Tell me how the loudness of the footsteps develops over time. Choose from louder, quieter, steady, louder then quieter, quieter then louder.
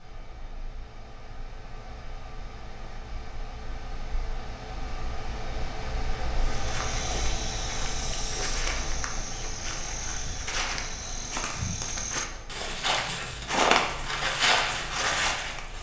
louder.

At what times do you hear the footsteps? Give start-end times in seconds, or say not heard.
6.4-15.7.